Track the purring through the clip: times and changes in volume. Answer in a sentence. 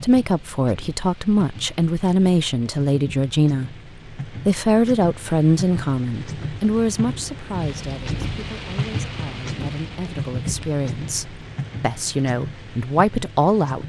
The purring can't be heard in this clip.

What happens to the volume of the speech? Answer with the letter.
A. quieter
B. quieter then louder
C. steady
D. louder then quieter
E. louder
B.